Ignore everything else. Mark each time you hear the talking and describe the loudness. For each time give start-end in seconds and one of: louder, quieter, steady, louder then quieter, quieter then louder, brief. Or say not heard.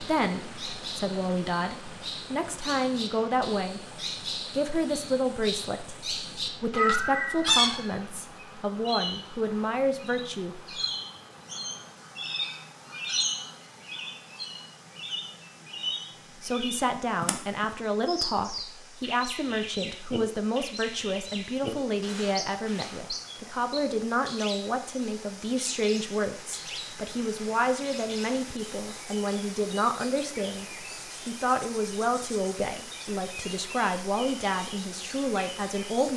0.0-10.8 steady
16.4-30.6 steady
31.2-36.1 steady.